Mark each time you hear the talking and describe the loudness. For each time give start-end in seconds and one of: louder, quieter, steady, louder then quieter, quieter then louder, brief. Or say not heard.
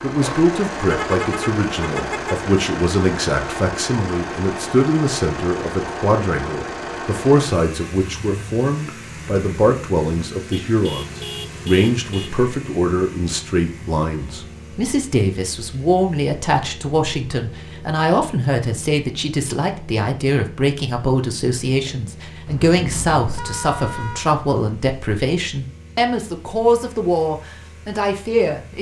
0.0-28.7 steady.